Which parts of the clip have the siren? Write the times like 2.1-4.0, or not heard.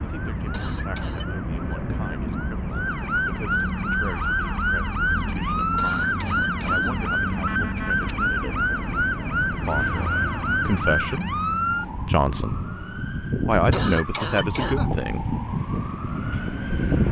0.0-17.0.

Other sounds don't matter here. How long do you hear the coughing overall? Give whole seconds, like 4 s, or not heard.
3 s.